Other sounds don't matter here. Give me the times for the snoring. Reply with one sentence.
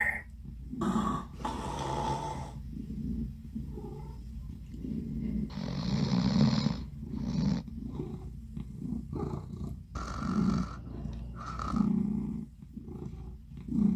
You can hear the snoring from 0.8 to 2.5 s, from 5.5 to 7.7 s and from 9.9 to 11.9 s.